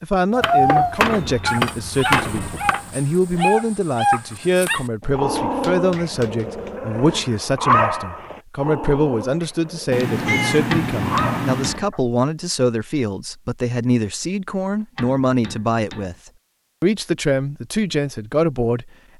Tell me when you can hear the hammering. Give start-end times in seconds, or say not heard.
0.4-3.0, 5.0-6.7, 10.7-11.9, 14.9-16.1.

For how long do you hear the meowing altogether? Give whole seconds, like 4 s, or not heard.
3 s.